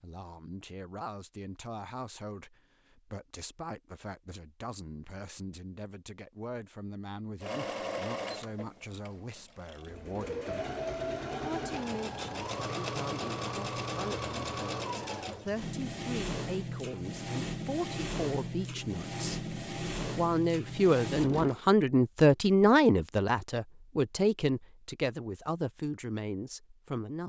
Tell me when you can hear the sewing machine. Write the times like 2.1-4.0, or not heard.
7.4-21.6.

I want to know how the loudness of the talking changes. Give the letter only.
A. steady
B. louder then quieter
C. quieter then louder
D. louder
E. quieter
D.